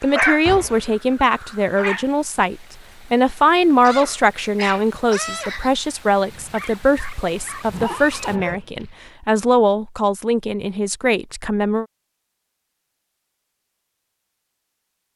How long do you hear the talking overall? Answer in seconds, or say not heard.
12 s.